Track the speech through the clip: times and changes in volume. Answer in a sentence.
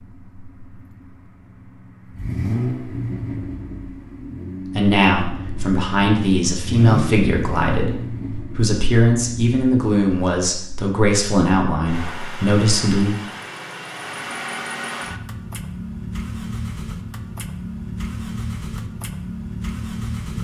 You can hear the speech from 4.8 to 13.2 s, at a steady volume.